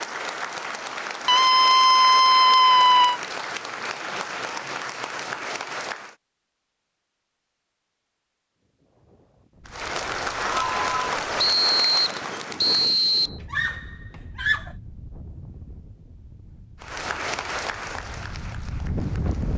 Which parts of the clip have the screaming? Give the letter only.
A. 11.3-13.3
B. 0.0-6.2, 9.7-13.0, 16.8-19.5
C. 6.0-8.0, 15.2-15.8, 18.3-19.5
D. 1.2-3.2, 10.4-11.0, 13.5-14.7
D.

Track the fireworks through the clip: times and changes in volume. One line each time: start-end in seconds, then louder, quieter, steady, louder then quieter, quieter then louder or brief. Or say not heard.
not heard.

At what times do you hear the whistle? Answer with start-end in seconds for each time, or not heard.
11.3-13.3.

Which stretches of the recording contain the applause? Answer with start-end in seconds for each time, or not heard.
0.0-6.2, 9.7-13.0, 16.8-19.5.